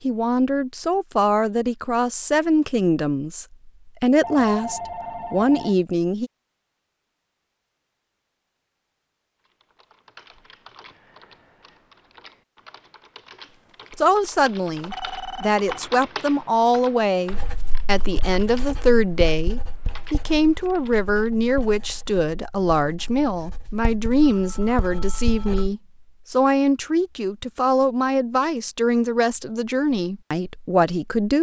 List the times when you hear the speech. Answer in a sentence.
The speech can be heard from 0.0 to 6.3 s and from 13.9 to 31.3 s.